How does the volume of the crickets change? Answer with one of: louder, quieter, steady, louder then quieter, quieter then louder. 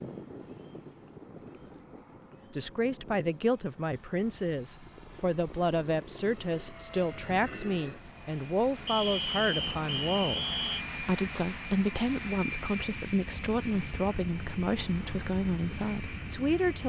louder.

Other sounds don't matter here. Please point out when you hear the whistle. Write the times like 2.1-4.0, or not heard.
8.8-10.8.